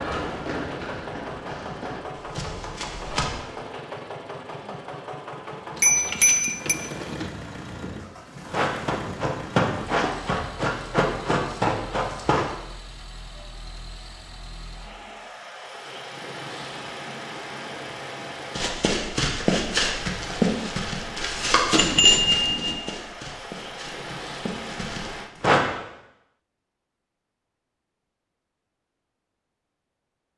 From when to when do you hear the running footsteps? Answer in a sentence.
You can hear the running footsteps from 0.0 to 3.3 s, from 8.3 to 12.5 s and from 18.6 to 25.6 s.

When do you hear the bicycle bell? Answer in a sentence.
You can hear the bicycle bell from 5.8 to 6.8 s and from 21.8 to 22.8 s.